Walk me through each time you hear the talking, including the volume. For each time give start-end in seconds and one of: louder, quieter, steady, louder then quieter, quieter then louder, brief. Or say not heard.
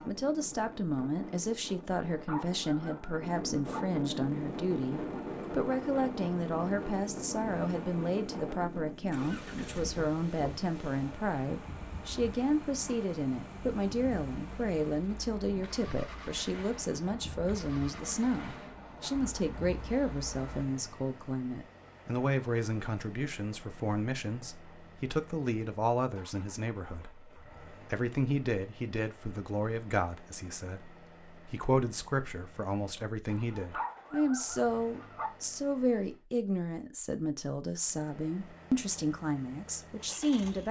0.1-40.6 steady.